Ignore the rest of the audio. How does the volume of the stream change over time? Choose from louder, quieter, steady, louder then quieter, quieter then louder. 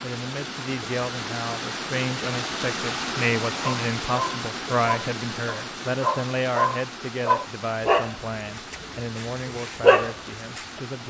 quieter.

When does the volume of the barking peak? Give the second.
10 s.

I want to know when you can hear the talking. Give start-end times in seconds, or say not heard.
0.0-11.0.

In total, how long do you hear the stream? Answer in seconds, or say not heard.
11 s.